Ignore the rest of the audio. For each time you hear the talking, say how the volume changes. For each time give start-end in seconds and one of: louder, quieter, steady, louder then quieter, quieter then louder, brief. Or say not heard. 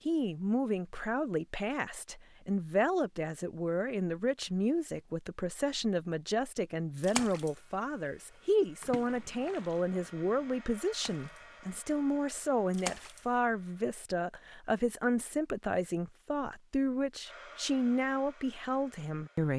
0.1-19.5 steady.